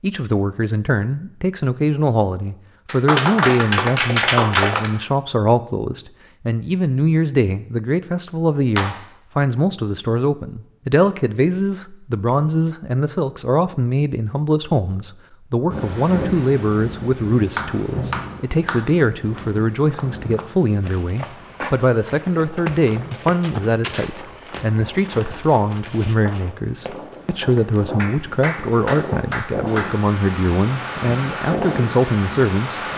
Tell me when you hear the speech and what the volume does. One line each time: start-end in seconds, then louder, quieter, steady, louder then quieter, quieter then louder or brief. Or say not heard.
0.0-32.9 steady.